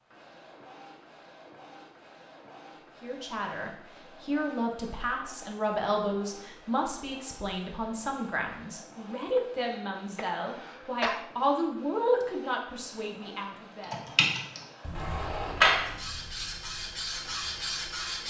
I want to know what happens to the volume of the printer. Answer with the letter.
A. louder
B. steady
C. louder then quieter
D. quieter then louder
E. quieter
A.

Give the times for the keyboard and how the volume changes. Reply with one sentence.
You can hear the keyboard from 13.8 to 18.2 s, getting quieter.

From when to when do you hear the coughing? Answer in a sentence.
The coughing can be heard from 10.2 to 11.2 s.